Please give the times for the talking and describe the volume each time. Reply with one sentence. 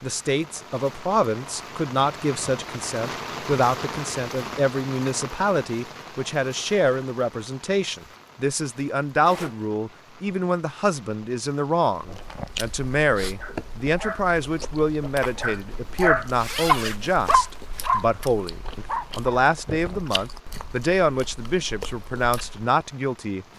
You can hear the talking from 0.0 to 23.4 s, at a steady volume.